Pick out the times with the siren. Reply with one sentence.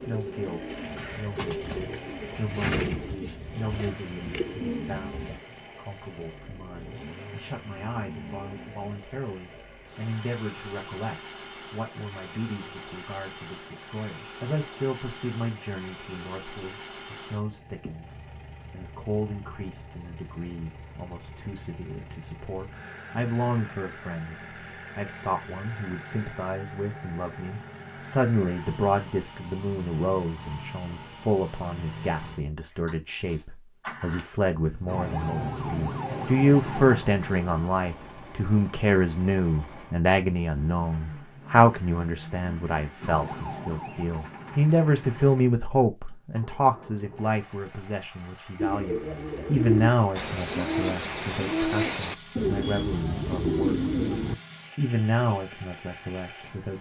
You can hear the siren from 34.9 to 37.5 s and from 43.0 to 45.2 s.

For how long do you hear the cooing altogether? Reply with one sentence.
You can hear the cooing for 11 seconds altogether.